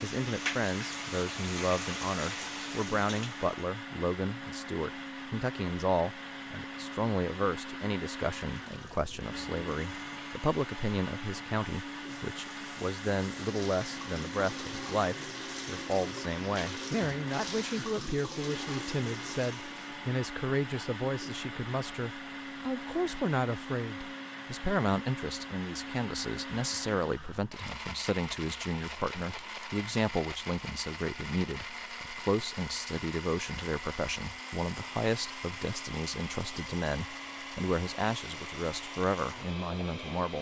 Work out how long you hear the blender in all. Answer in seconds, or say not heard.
40 s.